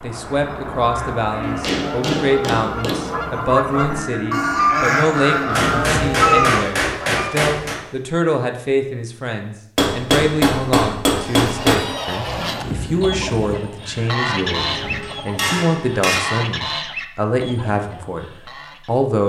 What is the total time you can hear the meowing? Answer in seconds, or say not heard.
2 s.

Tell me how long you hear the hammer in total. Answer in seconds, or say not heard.
8 s.